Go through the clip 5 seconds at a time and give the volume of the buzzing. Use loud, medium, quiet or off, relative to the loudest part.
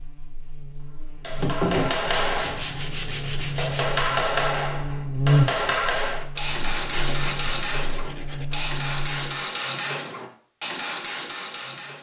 medium, loud, off.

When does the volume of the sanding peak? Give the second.
2 s.